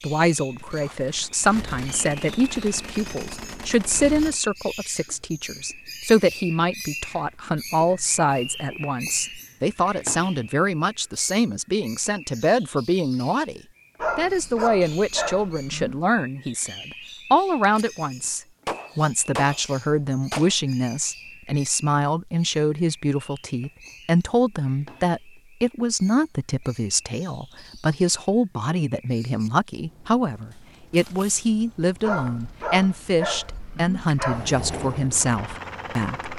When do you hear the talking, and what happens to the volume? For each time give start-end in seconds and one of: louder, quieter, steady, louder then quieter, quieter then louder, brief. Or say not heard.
0.0-36.3 steady.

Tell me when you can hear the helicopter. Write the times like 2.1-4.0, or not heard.
34.3-36.3.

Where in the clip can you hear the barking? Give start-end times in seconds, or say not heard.
13.9-16.0, 32.0-34.5.